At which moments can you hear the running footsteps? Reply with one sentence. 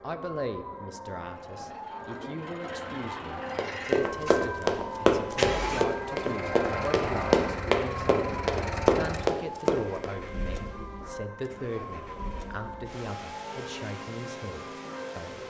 The running footsteps can be heard from 3.5 to 10.1 s.